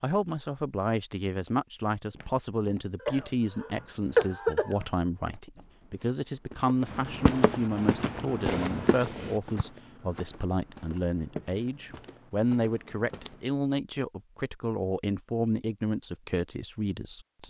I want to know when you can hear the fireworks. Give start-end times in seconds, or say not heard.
7.8-9.7.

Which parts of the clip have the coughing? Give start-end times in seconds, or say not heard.
3.0-4.8.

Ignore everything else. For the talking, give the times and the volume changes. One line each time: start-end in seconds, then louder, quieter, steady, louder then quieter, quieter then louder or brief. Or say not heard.
0.0-17.4 steady.